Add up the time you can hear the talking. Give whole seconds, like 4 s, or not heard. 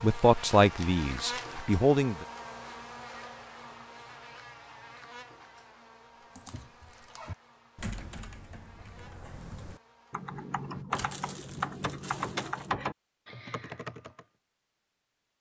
2 s.